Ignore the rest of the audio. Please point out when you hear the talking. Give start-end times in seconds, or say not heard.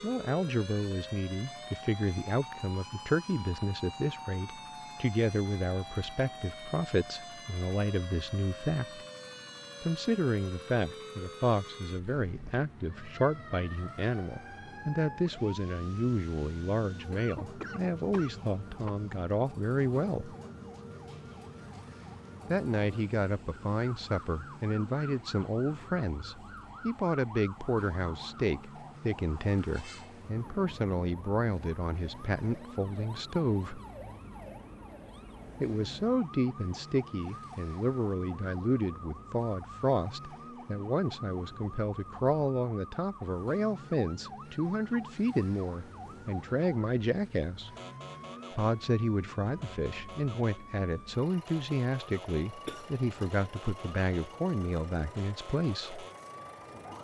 0.0-9.1, 9.8-20.4, 22.4-33.8, 35.6-47.7, 48.5-56.0.